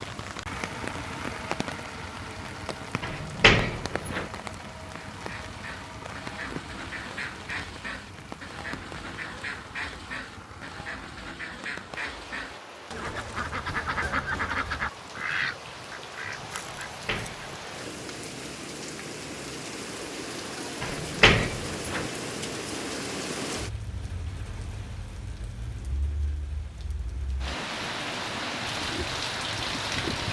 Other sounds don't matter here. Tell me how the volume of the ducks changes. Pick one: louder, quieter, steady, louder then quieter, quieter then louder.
louder.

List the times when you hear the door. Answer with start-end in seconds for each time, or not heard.
3.0-4.3, 16.6-17.9, 20.8-22.1.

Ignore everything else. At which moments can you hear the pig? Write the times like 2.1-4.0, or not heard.
28.6-30.2.